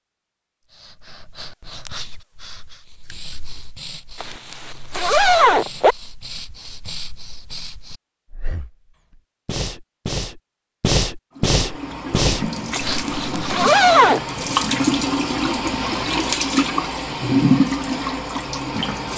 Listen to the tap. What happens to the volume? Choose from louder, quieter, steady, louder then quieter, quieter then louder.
louder.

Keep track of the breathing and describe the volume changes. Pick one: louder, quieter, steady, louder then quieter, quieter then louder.
louder.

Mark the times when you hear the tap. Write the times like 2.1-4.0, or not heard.
11.3-19.1.